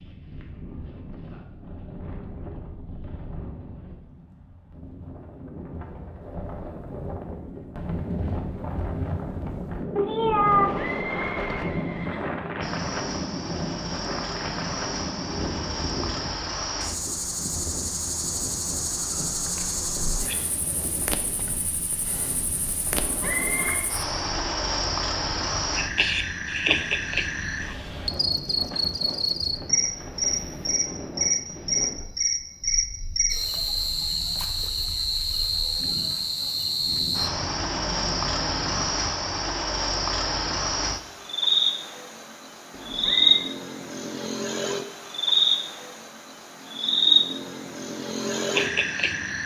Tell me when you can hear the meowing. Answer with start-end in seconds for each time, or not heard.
9.9-10.9.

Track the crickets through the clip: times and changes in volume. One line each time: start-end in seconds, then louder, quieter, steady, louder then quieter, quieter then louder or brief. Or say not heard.
12.6-49.4 louder.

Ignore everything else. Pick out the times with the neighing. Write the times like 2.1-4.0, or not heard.
10.7-12.3, 22.9-23.9, 42.7-43.5.